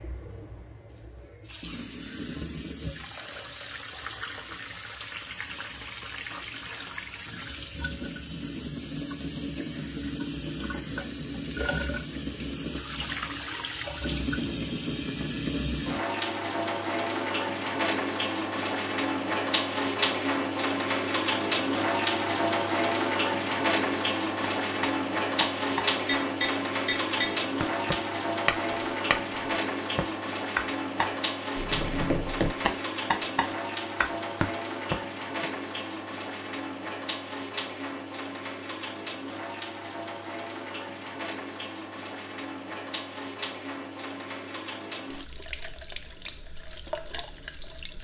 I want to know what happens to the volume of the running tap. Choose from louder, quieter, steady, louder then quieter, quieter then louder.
louder then quieter.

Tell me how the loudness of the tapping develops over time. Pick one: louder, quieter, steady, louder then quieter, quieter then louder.
steady.